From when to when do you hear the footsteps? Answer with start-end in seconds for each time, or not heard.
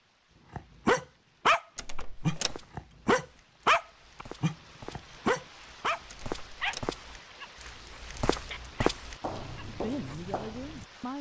2.4-10.8.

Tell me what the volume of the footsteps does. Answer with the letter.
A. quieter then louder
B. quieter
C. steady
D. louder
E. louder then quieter
E.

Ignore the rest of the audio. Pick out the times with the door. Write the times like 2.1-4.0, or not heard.
1.8-2.6, 6.0-7.0.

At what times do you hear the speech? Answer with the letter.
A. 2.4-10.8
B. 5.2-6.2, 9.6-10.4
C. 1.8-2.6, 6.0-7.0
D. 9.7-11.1
D.